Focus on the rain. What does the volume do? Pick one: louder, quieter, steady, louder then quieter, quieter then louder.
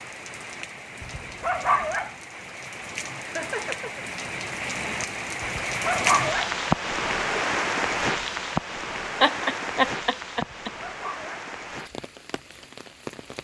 louder then quieter.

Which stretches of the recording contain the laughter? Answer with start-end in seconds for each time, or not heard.
3.2-4.0, 9.2-10.7.